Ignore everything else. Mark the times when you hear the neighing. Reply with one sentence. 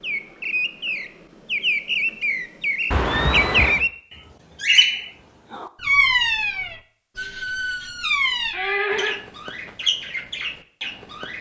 You can hear the neighing from 2.9 to 3.9 s and from 8.5 to 9.2 s.